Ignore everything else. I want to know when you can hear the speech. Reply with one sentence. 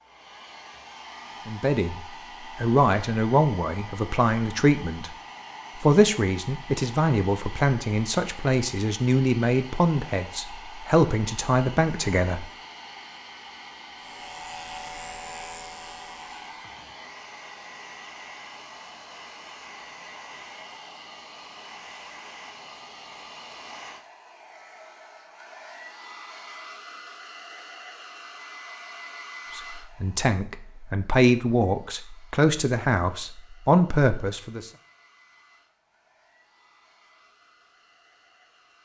You can hear the speech from 1.4 to 5.1 s, from 5.8 to 12.4 s and from 29.6 to 34.7 s.